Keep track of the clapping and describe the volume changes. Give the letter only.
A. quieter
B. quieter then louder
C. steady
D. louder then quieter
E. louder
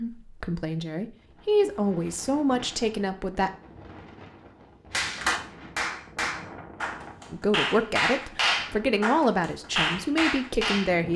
B.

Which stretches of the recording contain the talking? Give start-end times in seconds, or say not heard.
0.0-3.5, 7.3-11.1.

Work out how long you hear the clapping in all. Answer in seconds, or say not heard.
6 s.